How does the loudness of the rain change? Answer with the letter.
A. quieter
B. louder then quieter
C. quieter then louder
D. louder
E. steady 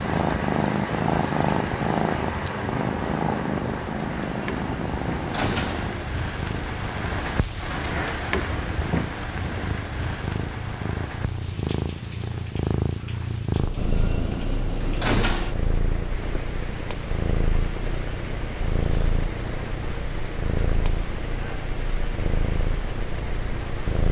A.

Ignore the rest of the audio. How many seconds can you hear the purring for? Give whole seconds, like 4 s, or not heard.
24 s.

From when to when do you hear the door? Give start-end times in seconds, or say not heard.
4.3-6.1, 13.8-15.6.